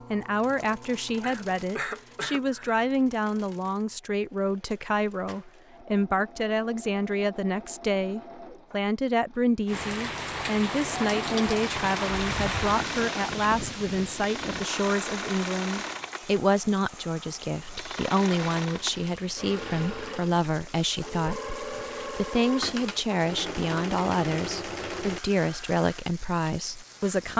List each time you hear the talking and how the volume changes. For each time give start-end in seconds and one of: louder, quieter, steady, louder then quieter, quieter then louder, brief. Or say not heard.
0.1-27.3 steady.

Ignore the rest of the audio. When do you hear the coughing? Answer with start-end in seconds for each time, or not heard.
1.2-2.8.